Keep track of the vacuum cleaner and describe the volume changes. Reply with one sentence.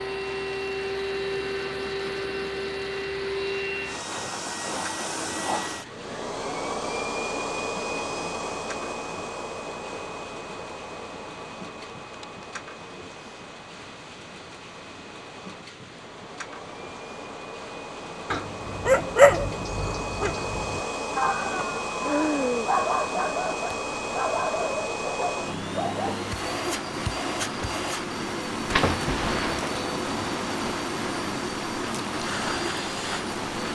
The volume of the vacuum cleaner goes down, then up.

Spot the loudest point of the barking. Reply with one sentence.
The loudest moment of the barking is at 19 seconds.